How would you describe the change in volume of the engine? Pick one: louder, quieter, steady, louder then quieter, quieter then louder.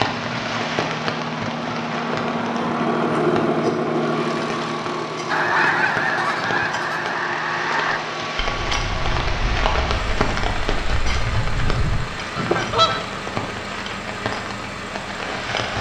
quieter.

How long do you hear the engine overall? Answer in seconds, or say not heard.
16 s.